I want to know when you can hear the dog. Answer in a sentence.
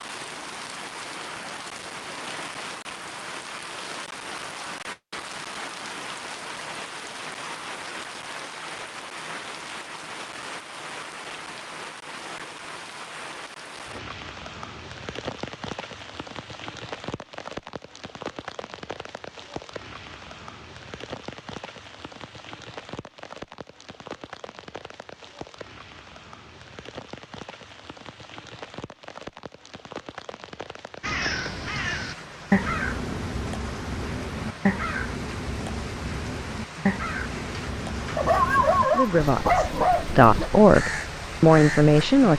The dog can be heard from 38.1 to 40.5 s.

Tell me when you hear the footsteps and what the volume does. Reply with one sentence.
You can't hear the footsteps here.